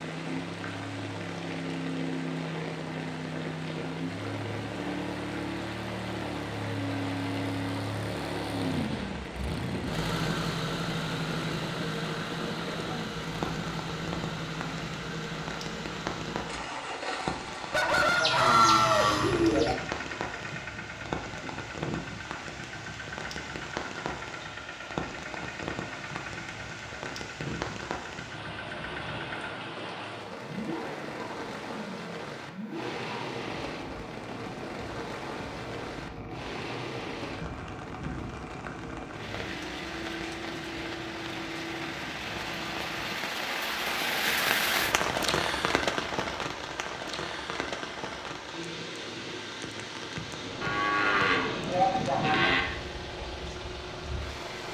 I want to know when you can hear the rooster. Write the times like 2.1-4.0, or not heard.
17.7-19.8.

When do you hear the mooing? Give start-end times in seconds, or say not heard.
18.1-19.8, 50.6-52.6.